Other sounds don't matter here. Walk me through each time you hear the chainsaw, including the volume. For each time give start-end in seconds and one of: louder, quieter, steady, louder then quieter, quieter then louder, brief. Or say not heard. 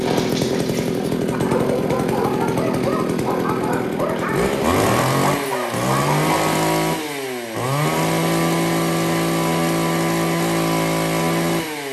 0.0-11.8 steady.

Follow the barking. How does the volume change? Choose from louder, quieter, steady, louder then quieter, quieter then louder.
louder.